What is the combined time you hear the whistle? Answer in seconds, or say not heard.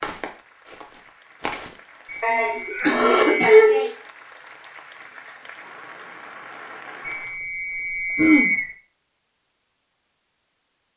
3 s.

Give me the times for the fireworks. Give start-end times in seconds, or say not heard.
not heard.